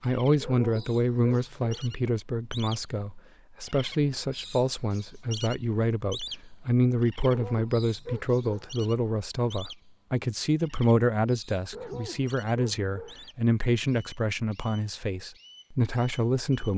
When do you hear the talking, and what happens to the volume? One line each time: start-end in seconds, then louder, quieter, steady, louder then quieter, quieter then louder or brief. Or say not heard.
0.0-16.7 steady.